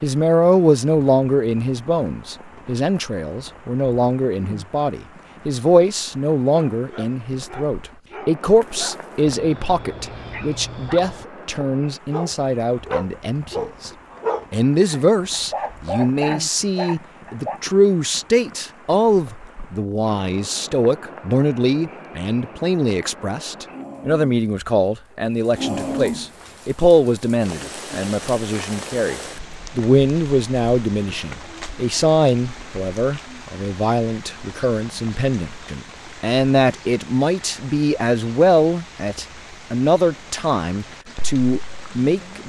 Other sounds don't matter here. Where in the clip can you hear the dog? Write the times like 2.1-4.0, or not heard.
6.5-17.6.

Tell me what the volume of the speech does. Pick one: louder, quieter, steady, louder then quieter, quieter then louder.
steady.